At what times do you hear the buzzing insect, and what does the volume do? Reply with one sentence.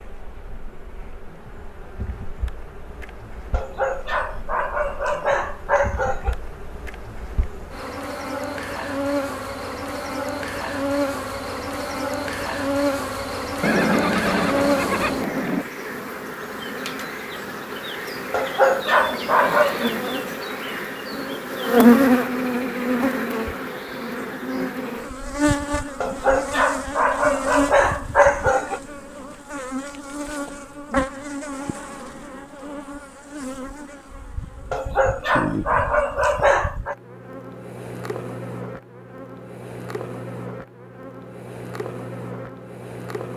You can hear the buzzing insect from 0.0 to 43.3 s, getting louder then quieter.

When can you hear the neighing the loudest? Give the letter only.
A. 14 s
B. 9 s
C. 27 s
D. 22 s
A.